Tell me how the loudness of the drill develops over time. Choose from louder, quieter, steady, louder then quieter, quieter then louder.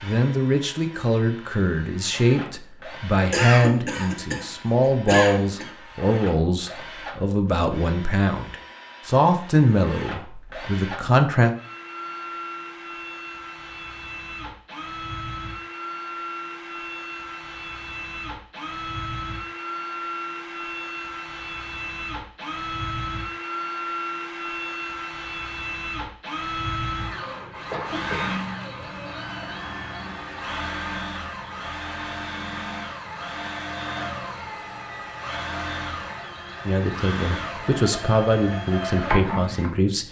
louder.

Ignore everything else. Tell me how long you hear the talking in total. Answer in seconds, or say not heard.
15 s.